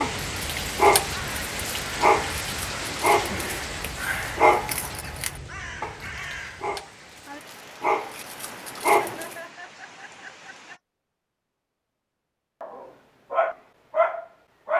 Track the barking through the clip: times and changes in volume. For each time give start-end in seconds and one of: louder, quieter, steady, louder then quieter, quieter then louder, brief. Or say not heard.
0.0-9.3 quieter then louder
12.6-14.7 brief.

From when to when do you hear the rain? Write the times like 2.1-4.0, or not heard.
0.0-10.8.